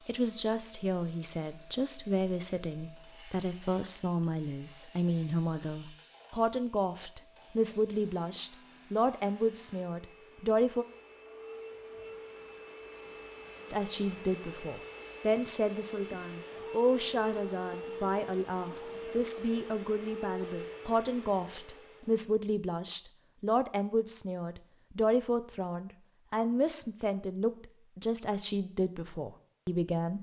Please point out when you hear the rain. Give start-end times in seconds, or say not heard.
not heard.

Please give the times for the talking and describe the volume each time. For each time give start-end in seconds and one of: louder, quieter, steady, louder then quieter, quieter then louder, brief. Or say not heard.
0.1-10.8 steady
13.7-30.1 steady.